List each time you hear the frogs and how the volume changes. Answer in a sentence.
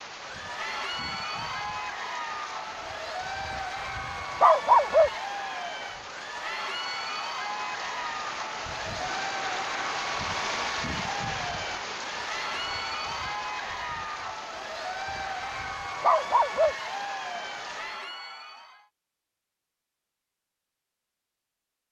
You can't hear the frogs here.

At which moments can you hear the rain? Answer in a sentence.
The rain can be heard from 0.0 to 18.1 s.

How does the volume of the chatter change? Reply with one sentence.
The loudness of the chatter stays about the same.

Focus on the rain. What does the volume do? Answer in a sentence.
The loudness of the rain goes up, then down.